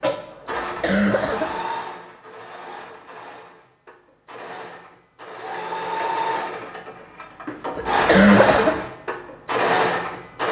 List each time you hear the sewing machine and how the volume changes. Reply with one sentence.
The sewing machine can be heard from 0.0 to 10.4 s, getting quieter then louder.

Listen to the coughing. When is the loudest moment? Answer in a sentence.
The volume of the coughing peaks at 8 seconds.